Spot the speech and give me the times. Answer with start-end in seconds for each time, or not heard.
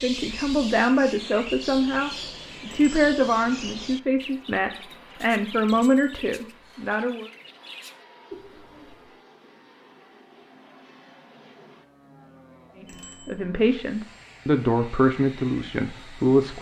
0.0-7.3, 12.8-16.5.